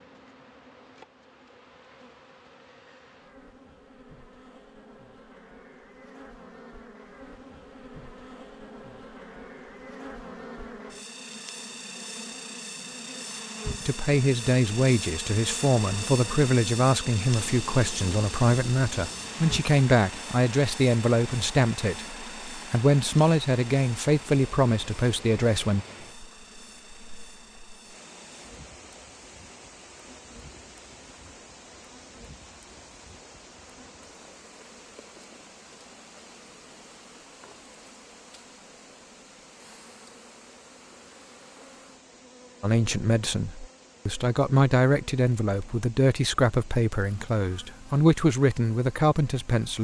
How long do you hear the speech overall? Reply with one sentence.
You can hear the speech for 19 seconds altogether.